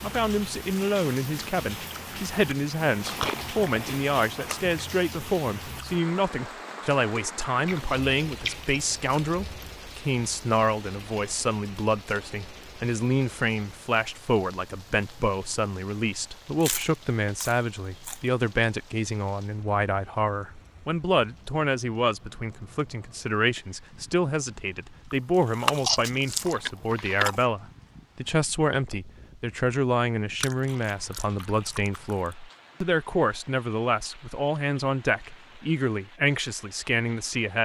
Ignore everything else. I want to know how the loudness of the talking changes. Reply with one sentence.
The loudness of the talking stays about the same.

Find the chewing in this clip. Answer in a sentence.
The chewing can be heard from 3.0 to 4.7 s, from 7.7 to 9.8 s, from 16.6 to 18.2 s, from 25.1 to 27.4 s and from 30.4 to 32.4 s.